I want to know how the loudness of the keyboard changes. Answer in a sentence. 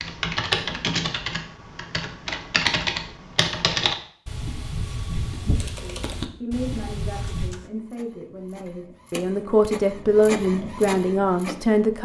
The volume of the keyboard goes down.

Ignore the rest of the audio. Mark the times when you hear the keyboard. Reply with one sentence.
You can hear the keyboard from 0.0 to 7.5 s.